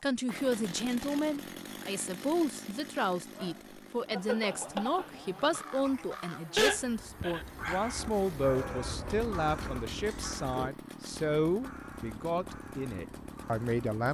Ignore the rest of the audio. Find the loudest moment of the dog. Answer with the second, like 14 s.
7 s.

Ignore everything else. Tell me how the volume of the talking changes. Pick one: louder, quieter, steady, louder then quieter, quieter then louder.
steady.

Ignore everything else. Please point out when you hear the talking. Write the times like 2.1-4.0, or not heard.
0.0-14.1.